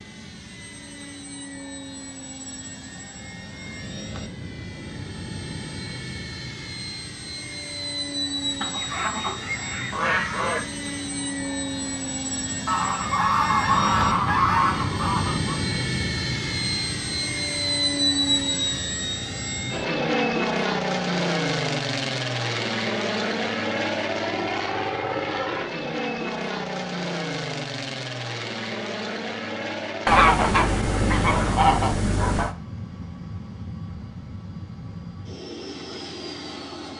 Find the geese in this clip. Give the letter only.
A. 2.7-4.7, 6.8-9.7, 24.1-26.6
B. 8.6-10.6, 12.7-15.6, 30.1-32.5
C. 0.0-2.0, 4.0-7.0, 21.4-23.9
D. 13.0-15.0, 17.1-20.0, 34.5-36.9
B.